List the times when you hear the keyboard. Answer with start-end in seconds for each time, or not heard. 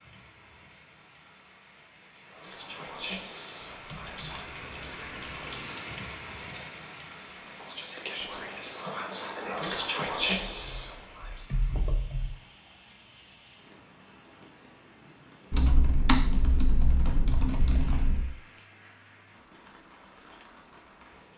3.6-5.6, 10.6-12.2, 15.5-18.3.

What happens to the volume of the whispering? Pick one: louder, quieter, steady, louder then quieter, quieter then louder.
quieter then louder.